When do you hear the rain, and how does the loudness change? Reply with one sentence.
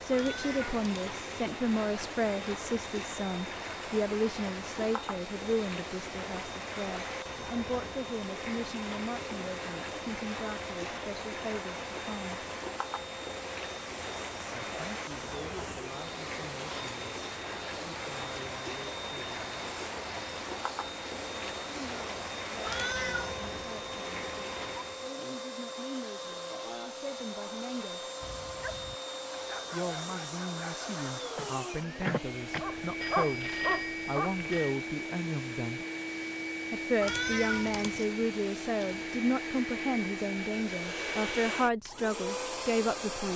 The rain can be heard from 0.0 to 25.1 s, at a steady volume.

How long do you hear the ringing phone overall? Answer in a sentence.
You can hear the ringing phone for 2 seconds altogether.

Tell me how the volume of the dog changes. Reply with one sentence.
The volume of the dog goes up.